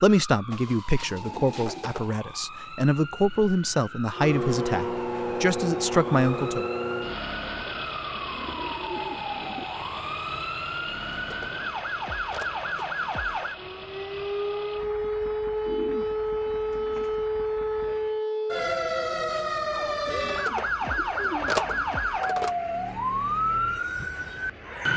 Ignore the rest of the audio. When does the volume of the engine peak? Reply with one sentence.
The loudest moment of the engine is at 5 seconds.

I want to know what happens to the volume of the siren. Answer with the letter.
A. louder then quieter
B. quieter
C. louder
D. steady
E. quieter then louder
C.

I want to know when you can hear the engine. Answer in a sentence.
You can hear the engine from 4.1 to 18.2 s and from 21.9 to 24.9 s.